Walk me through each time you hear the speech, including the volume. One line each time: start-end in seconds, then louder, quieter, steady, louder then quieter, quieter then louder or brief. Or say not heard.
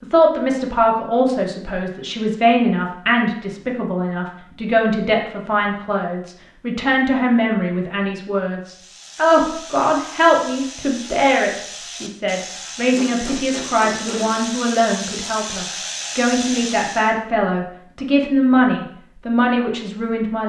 0.0-20.4 steady.